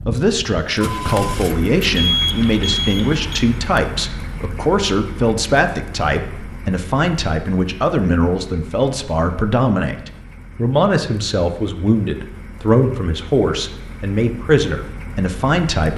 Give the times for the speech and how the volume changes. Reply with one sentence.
You can hear the speech from 0.1 to 15.9 s, at a steady volume.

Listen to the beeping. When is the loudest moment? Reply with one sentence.
The volume of the beeping peaks at 2 seconds.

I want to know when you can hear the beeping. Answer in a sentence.
The beeping can be heard from 1.9 to 3.4 s.